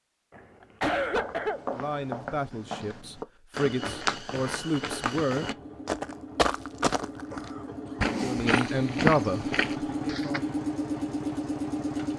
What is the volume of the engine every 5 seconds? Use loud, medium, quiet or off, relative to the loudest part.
off, medium, loud.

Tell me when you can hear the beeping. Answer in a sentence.
The beeping can't be heard in this clip.